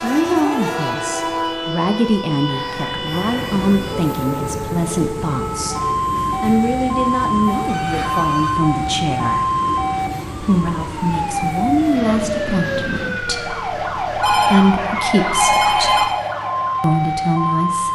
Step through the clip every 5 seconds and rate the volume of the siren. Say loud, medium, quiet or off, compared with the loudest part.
medium, loud, loud, loud.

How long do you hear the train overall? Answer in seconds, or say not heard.
13 s.